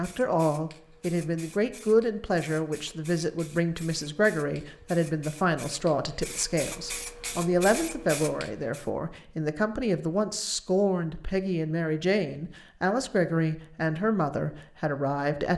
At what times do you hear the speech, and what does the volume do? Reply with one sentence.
The speech can be heard from 0.0 to 15.5 s, at a steady volume.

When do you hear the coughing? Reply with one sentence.
You can't hear the coughing here.